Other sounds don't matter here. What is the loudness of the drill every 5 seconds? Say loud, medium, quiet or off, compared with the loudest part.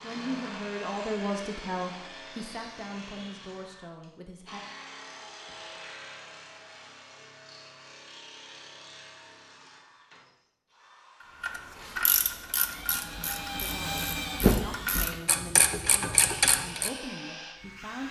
medium, quiet, loud, medium.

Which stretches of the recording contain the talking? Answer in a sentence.
The talking can be heard from 0.0 to 4.6 s and from 13.6 to 18.0 s.